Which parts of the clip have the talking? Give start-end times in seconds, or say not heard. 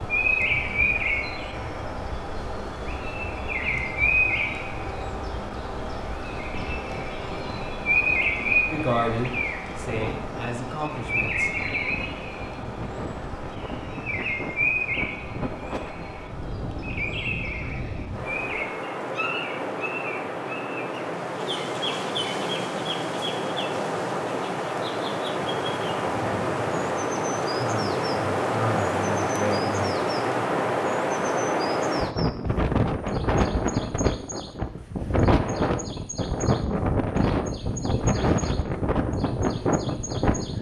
8.7-11.5, 27.6-29.9.